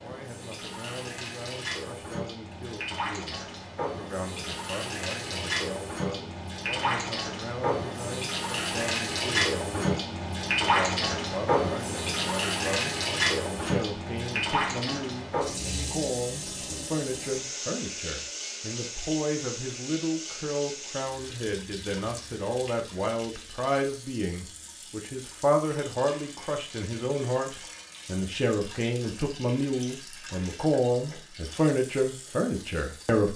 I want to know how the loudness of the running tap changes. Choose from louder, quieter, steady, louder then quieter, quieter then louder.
louder then quieter.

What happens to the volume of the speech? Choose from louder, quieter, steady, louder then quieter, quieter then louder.
louder.